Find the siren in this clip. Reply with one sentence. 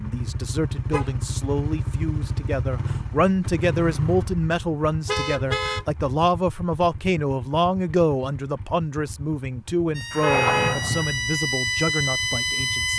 You can hear the siren from 9.9 to 12.9 s.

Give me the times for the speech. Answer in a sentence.
The speech can be heard from 0.0 to 12.9 s.